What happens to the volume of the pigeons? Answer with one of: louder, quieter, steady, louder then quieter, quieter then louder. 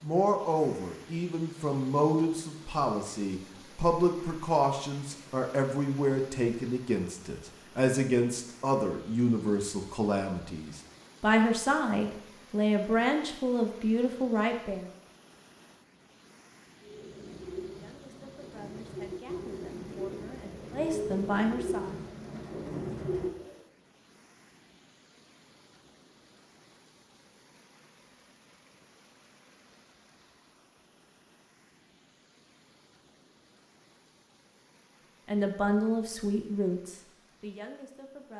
louder.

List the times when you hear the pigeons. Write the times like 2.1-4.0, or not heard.
16.8-23.6.